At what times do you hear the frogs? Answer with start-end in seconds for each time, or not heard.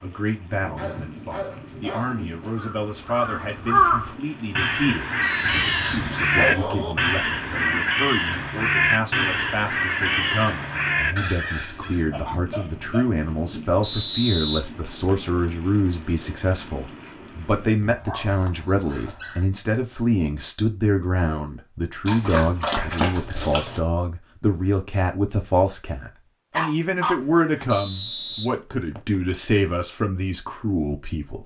not heard.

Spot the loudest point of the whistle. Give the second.
14 s.